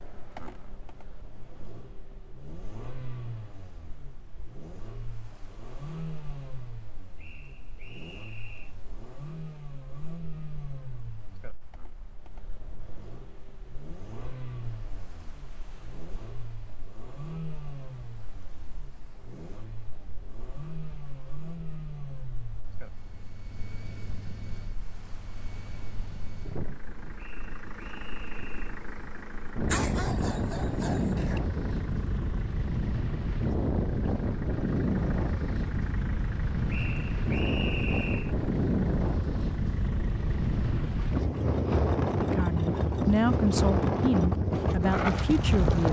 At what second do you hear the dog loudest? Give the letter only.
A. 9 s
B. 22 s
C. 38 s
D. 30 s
D.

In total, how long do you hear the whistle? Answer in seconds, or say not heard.
5 s.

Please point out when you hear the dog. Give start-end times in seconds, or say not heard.
29.6-31.4.